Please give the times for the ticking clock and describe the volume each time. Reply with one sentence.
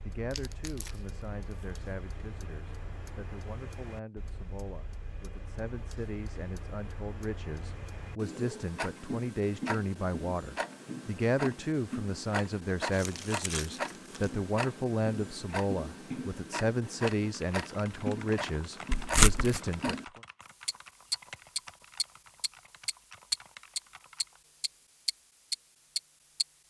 You can hear the ticking clock from 0.0 to 26.4 s, getting louder.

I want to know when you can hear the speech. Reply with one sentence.
The speech can be heard from 0.0 to 20.2 s.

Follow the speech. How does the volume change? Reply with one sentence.
The loudness of the speech goes up.